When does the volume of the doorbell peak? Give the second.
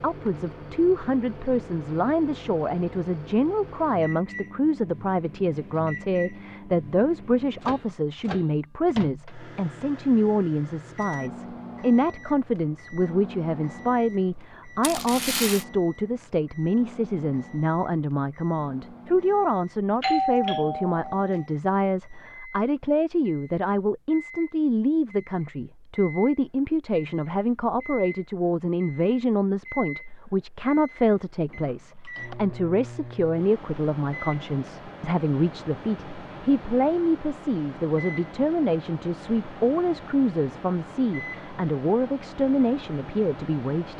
20 s.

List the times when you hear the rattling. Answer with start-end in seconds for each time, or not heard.
14.8-15.7.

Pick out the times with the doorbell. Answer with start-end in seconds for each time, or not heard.
20.0-21.4.